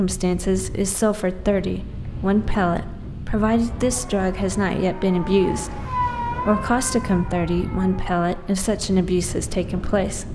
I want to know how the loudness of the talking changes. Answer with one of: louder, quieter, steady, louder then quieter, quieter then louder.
steady.